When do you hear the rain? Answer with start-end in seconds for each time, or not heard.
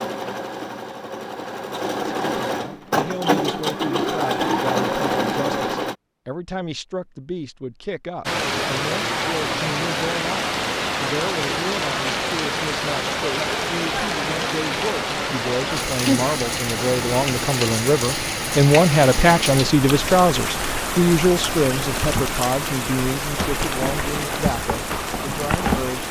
8.2-26.0.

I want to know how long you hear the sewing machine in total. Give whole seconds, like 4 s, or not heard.
6 s.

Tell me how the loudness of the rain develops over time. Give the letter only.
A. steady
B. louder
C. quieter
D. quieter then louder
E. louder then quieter
A.